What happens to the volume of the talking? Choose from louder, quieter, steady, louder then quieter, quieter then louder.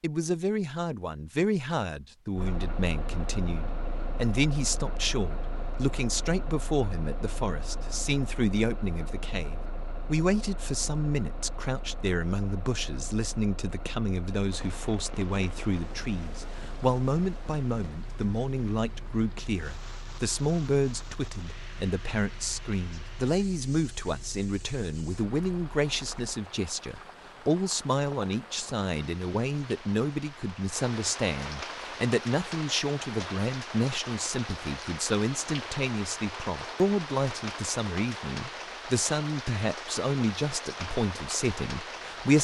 steady.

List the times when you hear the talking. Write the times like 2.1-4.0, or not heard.
0.0-42.3.